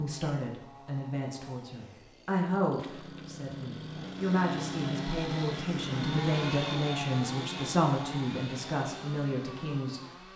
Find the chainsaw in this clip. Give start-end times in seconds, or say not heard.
0.0-10.3.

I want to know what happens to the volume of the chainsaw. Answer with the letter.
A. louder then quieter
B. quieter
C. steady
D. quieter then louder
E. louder
A.